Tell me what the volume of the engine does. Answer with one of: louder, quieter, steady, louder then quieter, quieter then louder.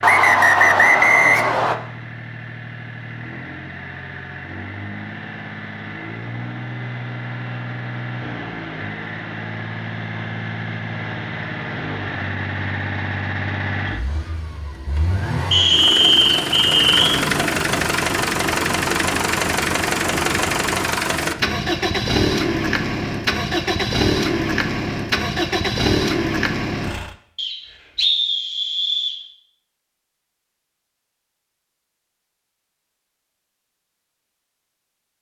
louder.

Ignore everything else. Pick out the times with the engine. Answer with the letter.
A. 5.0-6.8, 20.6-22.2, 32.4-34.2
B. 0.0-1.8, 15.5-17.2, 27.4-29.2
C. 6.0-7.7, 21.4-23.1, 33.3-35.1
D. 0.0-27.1
D.